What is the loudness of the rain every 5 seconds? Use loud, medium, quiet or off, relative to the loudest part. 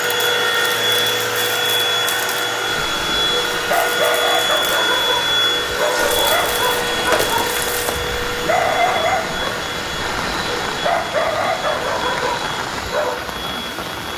off, loud, loud.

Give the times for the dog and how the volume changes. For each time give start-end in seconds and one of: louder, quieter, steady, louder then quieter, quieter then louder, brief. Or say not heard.
2.6-13.2 steady.